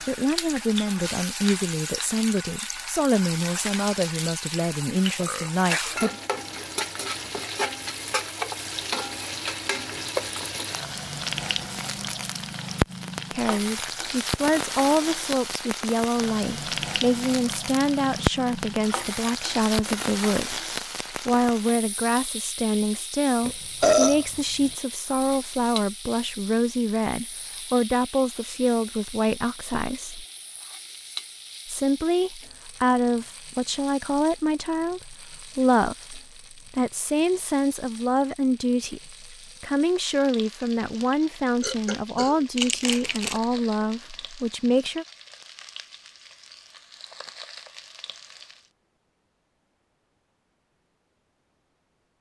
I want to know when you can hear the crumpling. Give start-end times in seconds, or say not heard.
42.5-43.4.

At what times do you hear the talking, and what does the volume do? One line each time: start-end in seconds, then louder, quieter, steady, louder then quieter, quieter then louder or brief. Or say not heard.
0.1-6.2 steady
13.3-30.2 steady
31.6-45.0 steady.